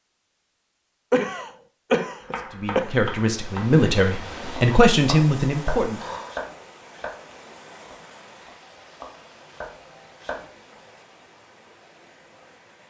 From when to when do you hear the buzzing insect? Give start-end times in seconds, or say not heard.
not heard.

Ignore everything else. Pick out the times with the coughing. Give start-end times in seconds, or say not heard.
1.1-3.0.